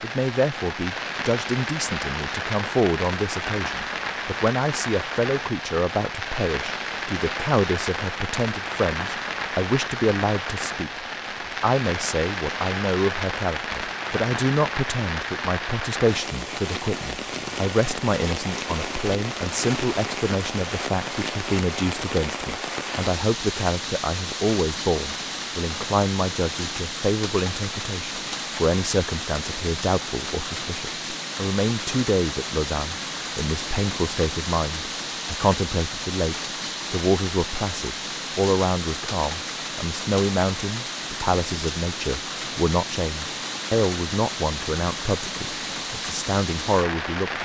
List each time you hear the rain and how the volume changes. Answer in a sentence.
You can hear the rain from 0.0 to 47.4 s, at a steady volume.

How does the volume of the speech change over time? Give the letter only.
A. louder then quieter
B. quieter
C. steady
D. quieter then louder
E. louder
C.